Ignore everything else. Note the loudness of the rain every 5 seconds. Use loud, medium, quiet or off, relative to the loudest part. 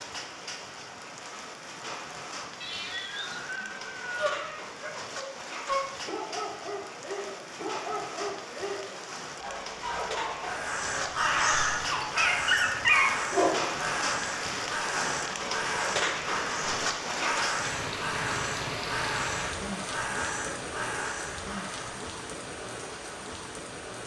medium, medium, loud, loud, medium.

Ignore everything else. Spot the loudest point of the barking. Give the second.
13 s.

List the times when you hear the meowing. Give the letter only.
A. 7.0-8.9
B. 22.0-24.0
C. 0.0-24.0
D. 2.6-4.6
D.